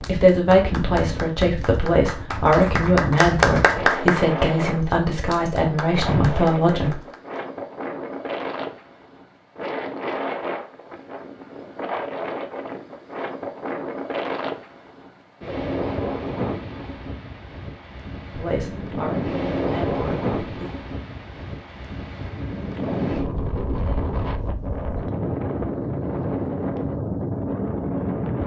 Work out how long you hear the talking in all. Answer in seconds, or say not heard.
9 s.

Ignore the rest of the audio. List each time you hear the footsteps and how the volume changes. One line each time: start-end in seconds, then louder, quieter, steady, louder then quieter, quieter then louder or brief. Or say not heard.
not heard.